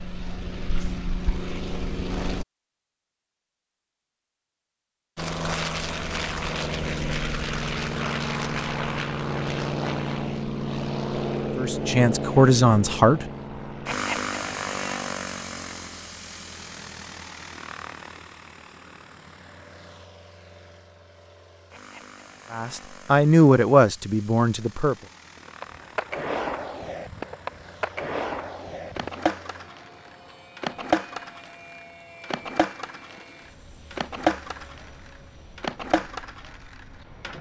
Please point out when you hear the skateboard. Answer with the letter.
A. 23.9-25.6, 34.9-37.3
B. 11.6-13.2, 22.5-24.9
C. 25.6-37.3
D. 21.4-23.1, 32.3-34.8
C.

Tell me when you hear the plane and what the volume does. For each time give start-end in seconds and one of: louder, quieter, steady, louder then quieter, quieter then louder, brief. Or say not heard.
0.0-2.5 brief
5.2-37.3 quieter.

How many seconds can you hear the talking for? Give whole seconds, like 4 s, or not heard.
4 s.